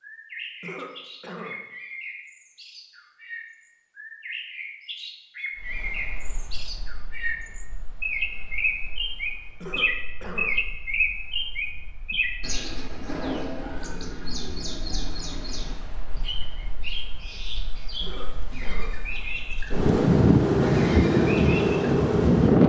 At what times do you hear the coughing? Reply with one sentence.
The coughing can be heard from 0.6 to 1.6 s, from 9.6 to 10.6 s and from 18.0 to 18.9 s.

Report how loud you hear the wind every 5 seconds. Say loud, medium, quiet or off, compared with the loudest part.
off, quiet, quiet, quiet, loud.